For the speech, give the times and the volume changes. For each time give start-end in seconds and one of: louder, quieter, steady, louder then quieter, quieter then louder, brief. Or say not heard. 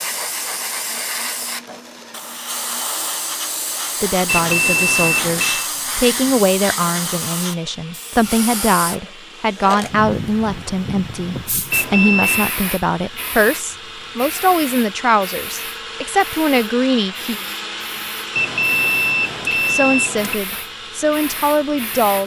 4.0-17.4 steady
19.6-22.2 brief.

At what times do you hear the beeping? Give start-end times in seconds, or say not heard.
4.2-5.7, 11.7-12.6, 18.4-20.4.